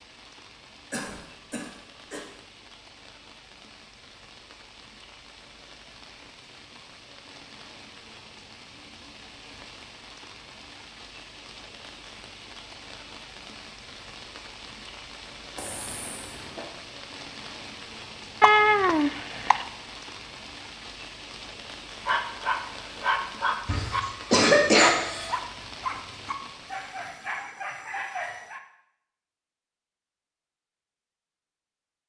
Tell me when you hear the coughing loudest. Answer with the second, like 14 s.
25 s.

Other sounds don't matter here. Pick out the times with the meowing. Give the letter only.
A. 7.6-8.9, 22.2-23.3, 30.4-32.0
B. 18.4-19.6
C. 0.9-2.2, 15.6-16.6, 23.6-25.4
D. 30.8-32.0
B.